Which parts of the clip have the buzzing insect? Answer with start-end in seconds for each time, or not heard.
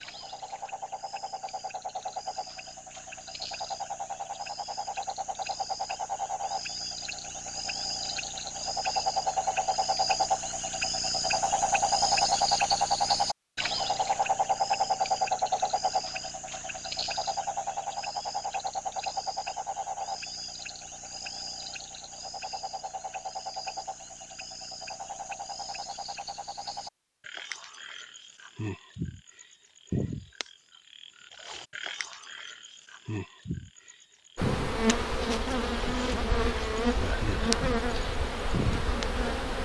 34.4-39.6.